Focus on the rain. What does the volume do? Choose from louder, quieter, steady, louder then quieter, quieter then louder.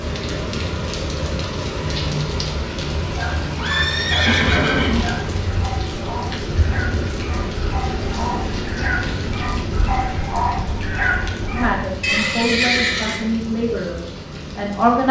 quieter.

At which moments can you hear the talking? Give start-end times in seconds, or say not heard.
11.6-15.0.